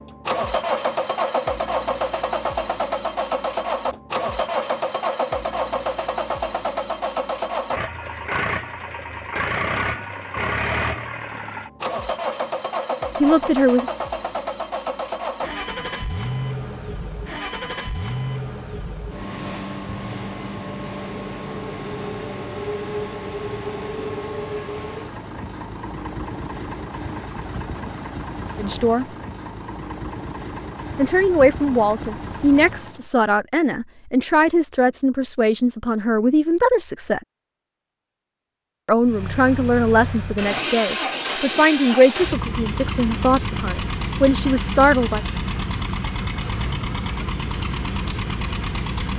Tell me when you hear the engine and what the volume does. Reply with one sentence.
The engine can be heard from 0.0 to 33.1 s, getting quieter; and from 39.0 to 49.1 s, at a steady volume.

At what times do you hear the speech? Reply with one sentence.
You can hear the speech from 13.2 to 13.9 s, from 28.6 to 29.1 s, from 30.9 to 37.2 s and from 38.9 to 45.2 s.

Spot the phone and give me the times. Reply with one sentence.
The phone can't be heard in this clip.